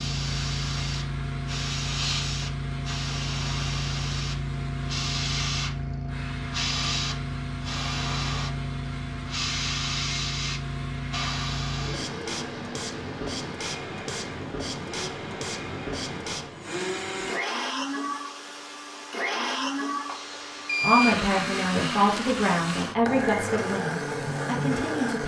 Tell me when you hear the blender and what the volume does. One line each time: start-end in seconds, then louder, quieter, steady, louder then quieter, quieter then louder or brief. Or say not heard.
0.1-25.2 louder.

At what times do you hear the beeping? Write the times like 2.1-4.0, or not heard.
20.1-21.2.